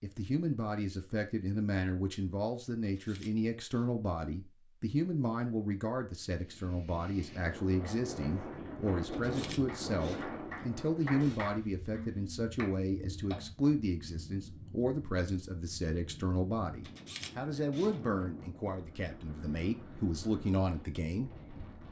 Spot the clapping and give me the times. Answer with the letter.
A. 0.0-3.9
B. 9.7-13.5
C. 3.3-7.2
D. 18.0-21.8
B.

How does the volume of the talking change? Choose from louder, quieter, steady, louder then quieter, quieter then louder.
steady.